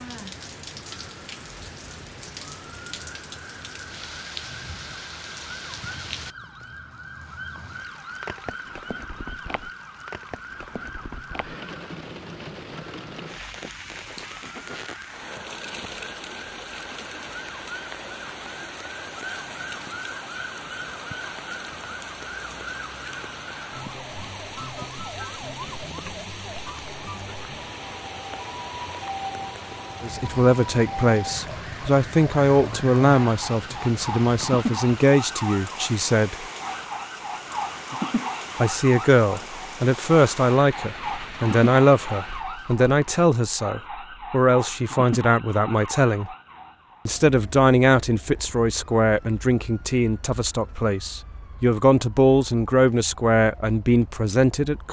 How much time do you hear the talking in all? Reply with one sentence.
You can hear the talking for 22 seconds altogether.